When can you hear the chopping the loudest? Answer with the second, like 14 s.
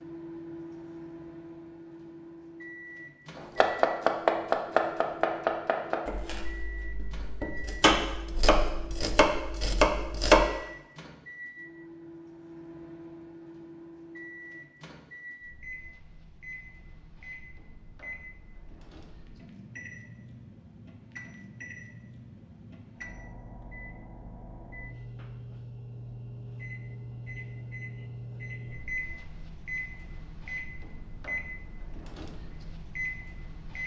10 s.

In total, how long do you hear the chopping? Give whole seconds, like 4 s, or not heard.
7 s.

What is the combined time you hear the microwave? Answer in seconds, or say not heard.
34 s.